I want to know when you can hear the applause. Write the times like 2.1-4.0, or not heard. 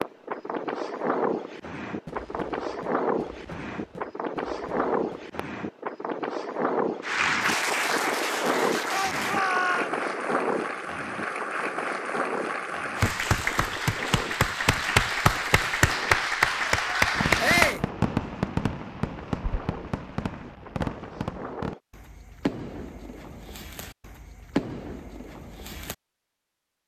7.0-17.8.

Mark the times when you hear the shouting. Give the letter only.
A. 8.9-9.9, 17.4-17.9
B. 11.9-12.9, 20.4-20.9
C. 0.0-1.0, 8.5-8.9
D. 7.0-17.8
A.